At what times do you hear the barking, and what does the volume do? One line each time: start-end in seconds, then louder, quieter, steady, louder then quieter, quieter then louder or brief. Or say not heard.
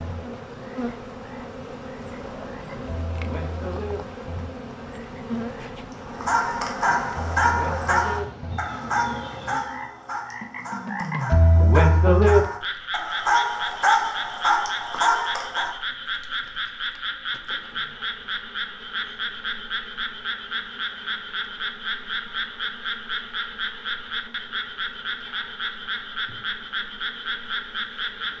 6.0-15.8 quieter then louder.